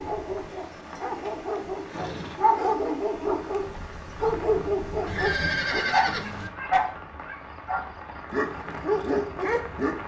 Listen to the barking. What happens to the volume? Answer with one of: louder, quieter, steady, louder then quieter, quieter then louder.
louder.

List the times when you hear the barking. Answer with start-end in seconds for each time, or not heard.
0.0-10.0.